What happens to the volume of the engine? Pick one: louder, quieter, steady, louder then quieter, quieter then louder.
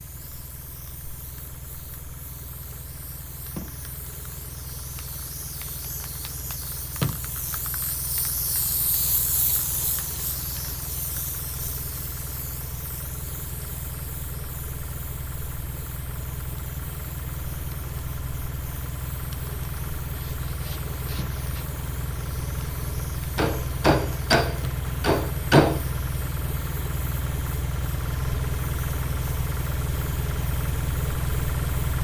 louder.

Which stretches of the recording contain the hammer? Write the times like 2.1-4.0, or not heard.
23.4-25.8.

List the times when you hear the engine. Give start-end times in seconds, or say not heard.
0.0-31.9.